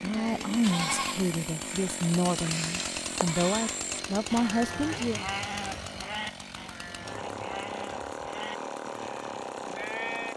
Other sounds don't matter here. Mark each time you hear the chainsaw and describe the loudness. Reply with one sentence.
The chainsaw can be heard from 0.0 to 10.3 s, at a steady volume.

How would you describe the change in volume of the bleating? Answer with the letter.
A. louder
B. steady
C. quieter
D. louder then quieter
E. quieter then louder
C.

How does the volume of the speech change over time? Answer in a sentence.
The volume of the speech stays about the same.